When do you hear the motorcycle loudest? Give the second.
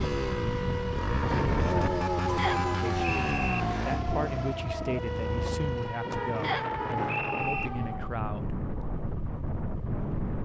2 s.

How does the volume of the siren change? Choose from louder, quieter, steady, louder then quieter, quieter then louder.
steady.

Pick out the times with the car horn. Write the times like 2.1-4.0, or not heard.
2.2-2.8, 6.1-7.0.